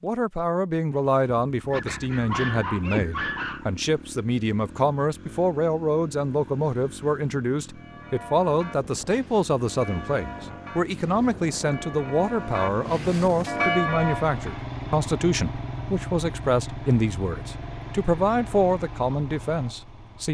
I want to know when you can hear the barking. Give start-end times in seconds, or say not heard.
1.7-3.6.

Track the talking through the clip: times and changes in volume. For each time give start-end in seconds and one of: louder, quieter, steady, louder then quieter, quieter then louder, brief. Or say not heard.
0.0-20.2 steady.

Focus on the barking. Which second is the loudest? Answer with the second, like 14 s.
3 s.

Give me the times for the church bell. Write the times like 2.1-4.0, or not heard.
7.8-14.6.